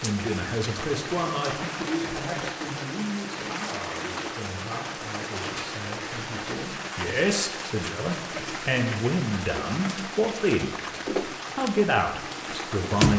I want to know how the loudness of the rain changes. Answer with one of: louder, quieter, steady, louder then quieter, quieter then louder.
steady.